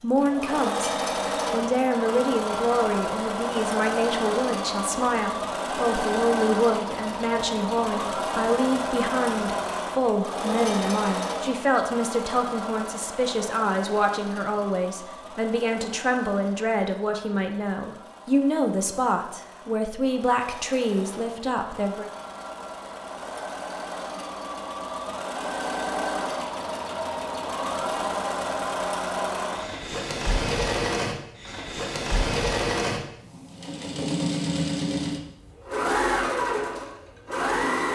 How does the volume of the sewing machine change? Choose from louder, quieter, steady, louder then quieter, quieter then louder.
quieter then louder.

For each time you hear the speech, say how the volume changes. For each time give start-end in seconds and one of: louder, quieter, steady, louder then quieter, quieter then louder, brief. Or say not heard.
0.0-0.9 brief
1.5-22.1 steady.